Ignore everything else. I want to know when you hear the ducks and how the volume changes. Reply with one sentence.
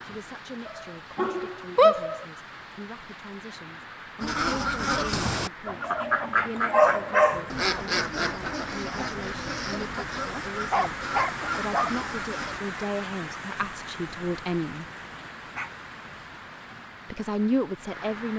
The ducks can be heard from 4.2 to 12.6 s, getting quieter.